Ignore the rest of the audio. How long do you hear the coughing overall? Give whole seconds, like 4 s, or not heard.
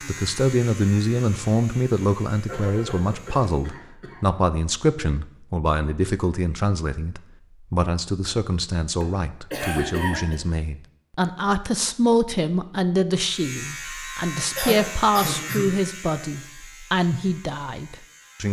4 s.